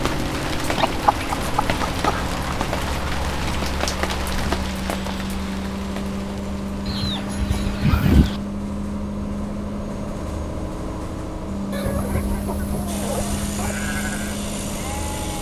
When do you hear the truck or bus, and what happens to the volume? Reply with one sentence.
You can hear the truck or bus from 0.0 to 15.3 s, at a steady volume.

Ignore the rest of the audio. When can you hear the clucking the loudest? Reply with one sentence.
The loudest moment of the clucking is at 8 seconds.